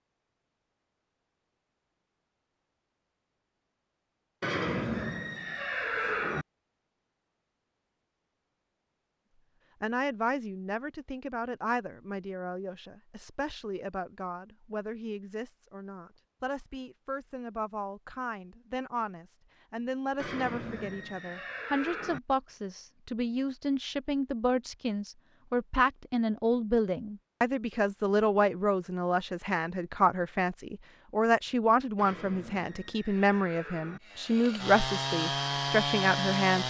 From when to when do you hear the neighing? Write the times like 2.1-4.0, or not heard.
4.4-6.5, 20.1-22.2, 31.9-34.0.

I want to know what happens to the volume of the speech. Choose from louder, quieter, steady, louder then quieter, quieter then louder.
louder.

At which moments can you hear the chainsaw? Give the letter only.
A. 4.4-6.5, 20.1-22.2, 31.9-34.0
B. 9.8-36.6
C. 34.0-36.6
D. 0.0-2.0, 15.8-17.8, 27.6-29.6
C.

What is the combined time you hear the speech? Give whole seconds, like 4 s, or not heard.
27 s.